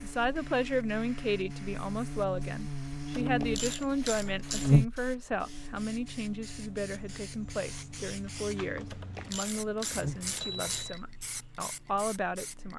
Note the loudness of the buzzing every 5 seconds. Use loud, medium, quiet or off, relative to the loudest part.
loud, quiet, medium.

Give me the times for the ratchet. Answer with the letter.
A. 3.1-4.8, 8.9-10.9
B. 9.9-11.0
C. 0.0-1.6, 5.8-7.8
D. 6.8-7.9
A.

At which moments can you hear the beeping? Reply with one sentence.
You can hear the beeping from 9.9 to 11.0 s.